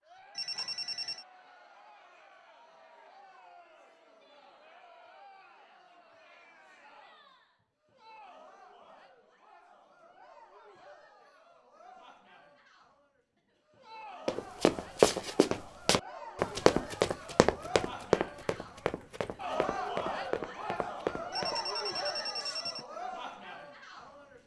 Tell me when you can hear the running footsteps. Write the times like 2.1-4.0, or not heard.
14.2-21.6.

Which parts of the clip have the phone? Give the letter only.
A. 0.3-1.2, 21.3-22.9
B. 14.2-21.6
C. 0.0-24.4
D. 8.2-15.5
A.